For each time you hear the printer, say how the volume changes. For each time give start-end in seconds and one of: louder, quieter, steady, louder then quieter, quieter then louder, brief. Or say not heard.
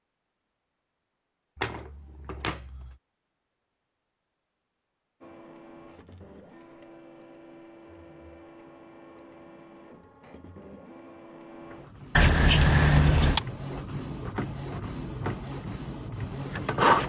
5.2-17.0 louder.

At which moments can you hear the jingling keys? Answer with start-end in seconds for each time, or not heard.
1.6-3.0, 12.2-13.4.